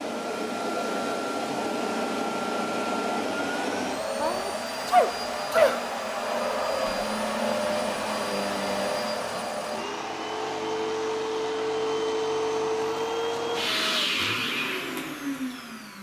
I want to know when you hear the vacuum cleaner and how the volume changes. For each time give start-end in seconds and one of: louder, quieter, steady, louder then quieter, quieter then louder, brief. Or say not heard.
0.0-15.9 steady.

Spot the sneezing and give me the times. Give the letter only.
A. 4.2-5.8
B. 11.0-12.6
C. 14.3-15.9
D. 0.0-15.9
A.